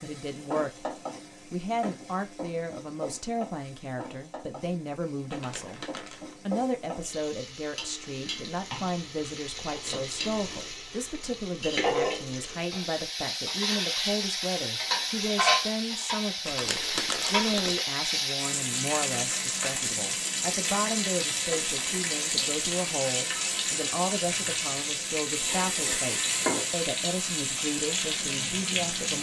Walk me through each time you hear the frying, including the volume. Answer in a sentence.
The frying can be heard from 0.0 to 29.1 s, getting louder.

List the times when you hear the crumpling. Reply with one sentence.
The crumpling can be heard from 5.3 to 6.3 s and from 16.4 to 17.8 s.